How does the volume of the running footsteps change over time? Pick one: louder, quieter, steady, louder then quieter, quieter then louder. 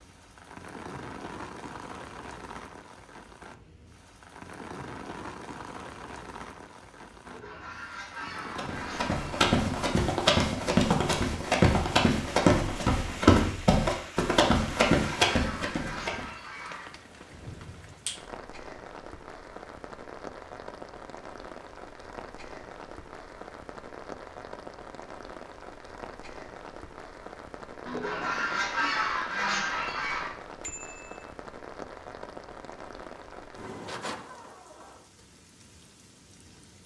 steady.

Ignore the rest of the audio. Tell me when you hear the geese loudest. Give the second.
29 s.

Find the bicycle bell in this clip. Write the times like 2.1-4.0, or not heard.
30.6-31.2.